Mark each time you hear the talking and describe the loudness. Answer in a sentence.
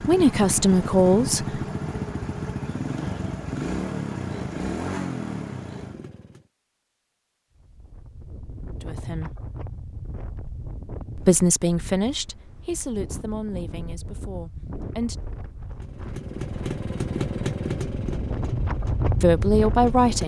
The talking can be heard briefly from 0.1 to 1.6 s; briefly from 8.8 to 9.3 s; from 11.2 to 15.2 s, getting quieter; and briefly from 19.2 to 20.2 s.